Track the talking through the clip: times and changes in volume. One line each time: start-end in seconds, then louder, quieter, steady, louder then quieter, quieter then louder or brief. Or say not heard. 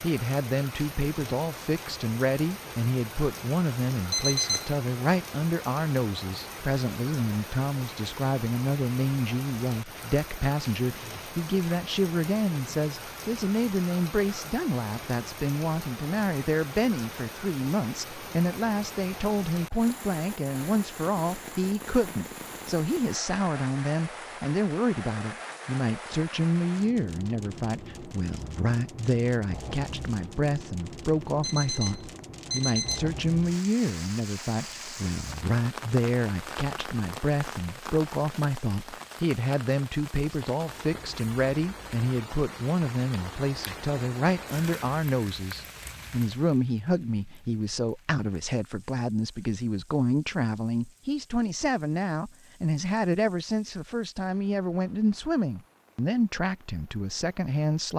0.0-57.9 steady.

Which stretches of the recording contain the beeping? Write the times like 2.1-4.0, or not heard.
3.9-4.9, 31.2-33.0.